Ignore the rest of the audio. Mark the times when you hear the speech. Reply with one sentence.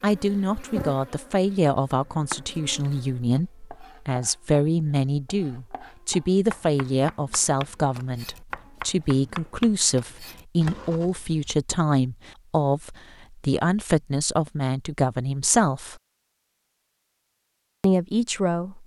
You can hear the speech from 0.0 to 16.0 s and from 17.8 to 18.8 s.